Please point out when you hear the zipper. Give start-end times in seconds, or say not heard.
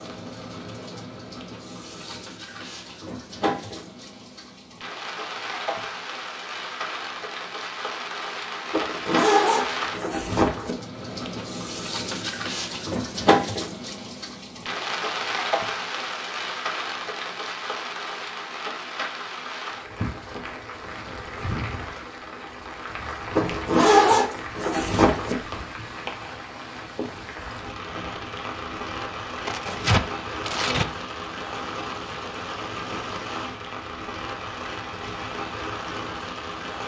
8.7-10.8, 23.4-25.4.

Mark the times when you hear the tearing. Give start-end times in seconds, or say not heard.
29.4-30.9.